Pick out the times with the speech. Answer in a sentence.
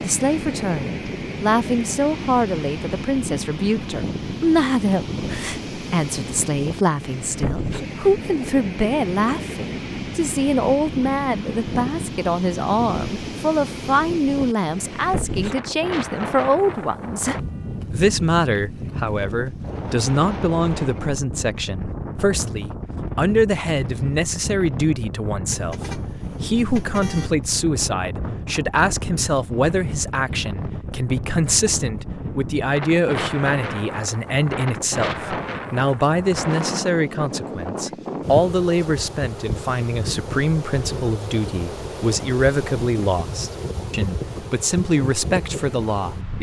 The speech can be heard from 0.0 to 46.3 s.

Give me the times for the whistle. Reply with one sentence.
You can't hear the whistle here.